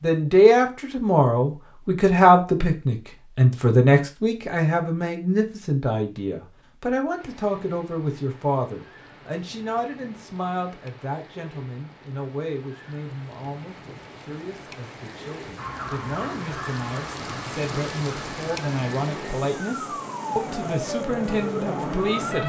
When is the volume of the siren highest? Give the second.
22 s.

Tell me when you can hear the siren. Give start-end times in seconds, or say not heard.
15.6-22.4.